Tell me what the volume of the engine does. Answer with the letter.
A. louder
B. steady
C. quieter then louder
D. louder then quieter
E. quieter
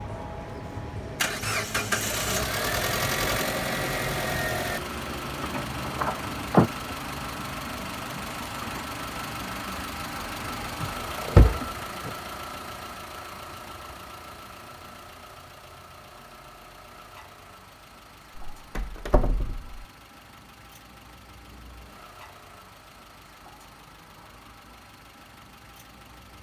E.